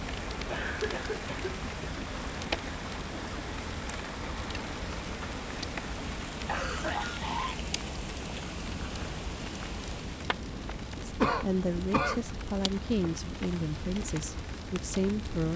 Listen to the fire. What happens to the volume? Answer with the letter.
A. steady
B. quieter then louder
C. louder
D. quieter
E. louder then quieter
A.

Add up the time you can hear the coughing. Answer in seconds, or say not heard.
4 s.